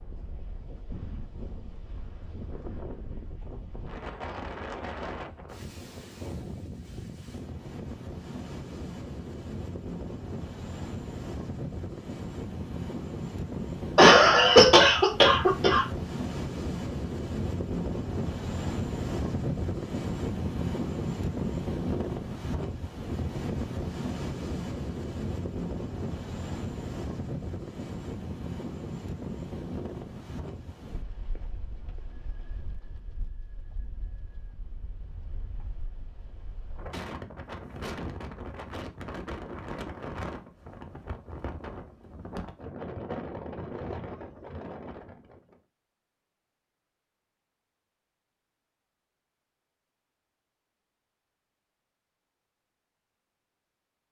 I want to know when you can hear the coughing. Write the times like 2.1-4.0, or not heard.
13.9-15.8.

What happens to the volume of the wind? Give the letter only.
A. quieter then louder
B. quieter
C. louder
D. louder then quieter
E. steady
D.